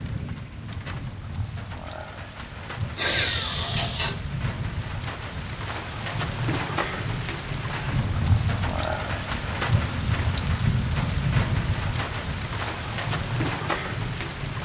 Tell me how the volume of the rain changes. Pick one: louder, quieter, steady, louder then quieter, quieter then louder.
louder.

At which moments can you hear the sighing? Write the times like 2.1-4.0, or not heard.
2.6-4.2.